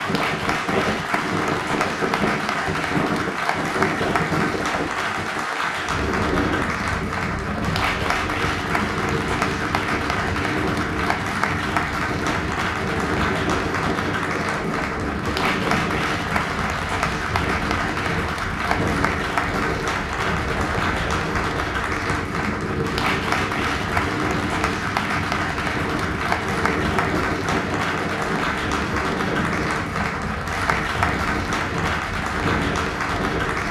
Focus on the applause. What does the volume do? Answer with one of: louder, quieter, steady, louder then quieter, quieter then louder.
steady.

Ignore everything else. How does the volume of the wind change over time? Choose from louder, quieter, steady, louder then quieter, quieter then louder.
steady.